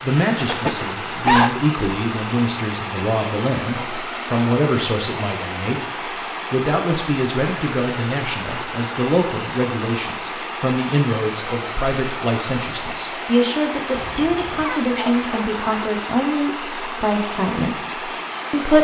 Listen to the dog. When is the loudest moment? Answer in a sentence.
The loudest moment of the dog is at 1 second.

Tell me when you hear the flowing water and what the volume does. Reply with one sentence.
You can hear the flowing water from 0.0 to 18.7 s, at a steady volume.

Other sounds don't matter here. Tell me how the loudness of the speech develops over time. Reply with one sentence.
The volume of the speech stays about the same.